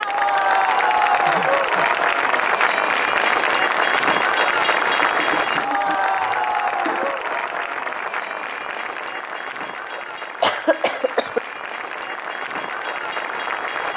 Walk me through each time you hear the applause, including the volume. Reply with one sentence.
The applause can be heard from 0.0 to 13.9 s, getting quieter.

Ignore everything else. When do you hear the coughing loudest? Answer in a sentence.
The loudest moment of the coughing is at 11 seconds.